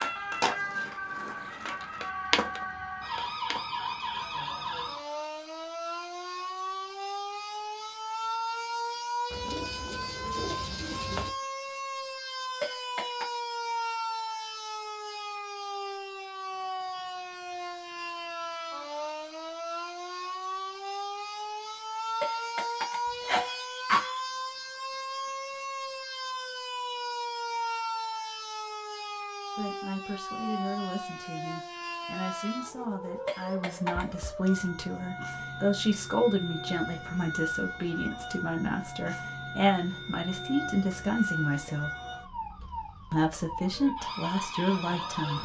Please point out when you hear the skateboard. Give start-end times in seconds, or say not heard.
0.0-3.6.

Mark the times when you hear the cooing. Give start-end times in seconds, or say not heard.
9.3-11.3.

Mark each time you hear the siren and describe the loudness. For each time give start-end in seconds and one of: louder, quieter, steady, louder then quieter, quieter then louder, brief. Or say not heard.
0.0-45.4 steady.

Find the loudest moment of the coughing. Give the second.
24 s.